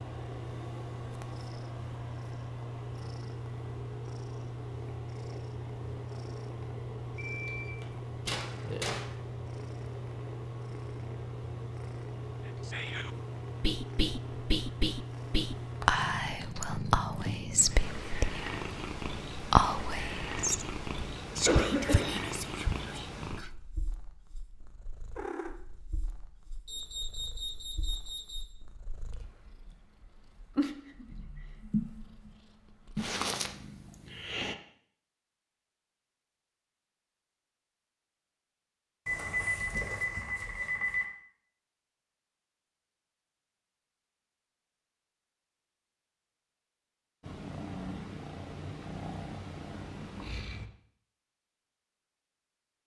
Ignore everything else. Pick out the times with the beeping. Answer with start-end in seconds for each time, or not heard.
7.2-9.1, 26.6-28.4, 39.0-41.0.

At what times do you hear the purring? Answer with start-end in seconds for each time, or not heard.
0.0-34.5, 47.2-50.7.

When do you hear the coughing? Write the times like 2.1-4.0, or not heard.
21.3-22.2.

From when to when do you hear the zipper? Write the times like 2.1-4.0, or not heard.
not heard.